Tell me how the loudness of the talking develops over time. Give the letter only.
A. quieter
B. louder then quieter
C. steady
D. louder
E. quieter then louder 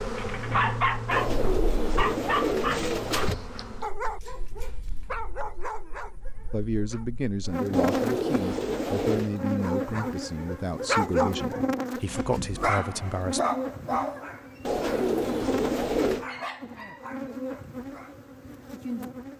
C.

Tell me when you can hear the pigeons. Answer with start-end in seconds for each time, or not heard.
1.1-3.4, 7.7-9.3, 14.7-16.2.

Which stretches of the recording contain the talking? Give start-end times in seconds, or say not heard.
6.5-13.4.